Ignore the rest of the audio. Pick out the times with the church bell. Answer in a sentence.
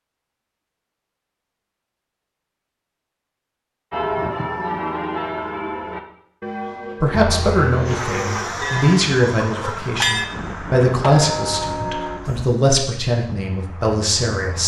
The church bell can be heard from 3.9 to 12.5 s.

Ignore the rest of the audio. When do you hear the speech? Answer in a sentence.
The speech can be heard from 7.0 to 14.6 s.